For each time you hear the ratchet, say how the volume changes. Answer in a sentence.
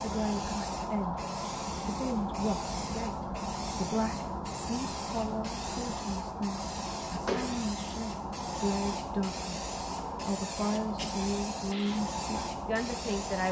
You can't hear the ratchet here.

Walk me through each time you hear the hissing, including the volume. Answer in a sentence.
The hissing can be heard from 0.0 to 13.4 s, at a steady volume.